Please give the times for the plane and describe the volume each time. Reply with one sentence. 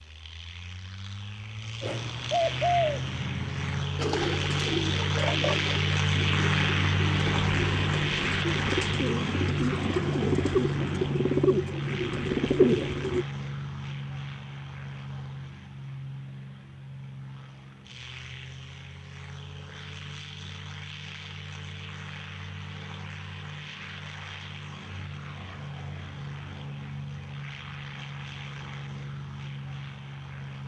The plane can be heard from 0.0 to 30.6 s, getting quieter.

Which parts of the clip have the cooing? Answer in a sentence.
You can hear the cooing from 1.8 to 13.2 s.